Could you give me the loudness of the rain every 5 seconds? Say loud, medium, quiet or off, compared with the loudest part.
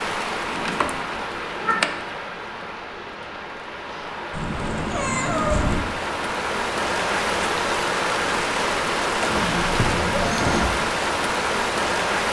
medium, loud, loud.